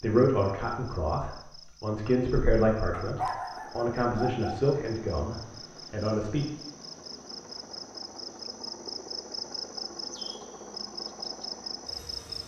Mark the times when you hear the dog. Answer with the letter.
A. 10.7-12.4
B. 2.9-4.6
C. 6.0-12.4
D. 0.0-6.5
B.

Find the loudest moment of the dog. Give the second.
3 s.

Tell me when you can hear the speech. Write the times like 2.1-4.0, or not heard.
0.0-6.5.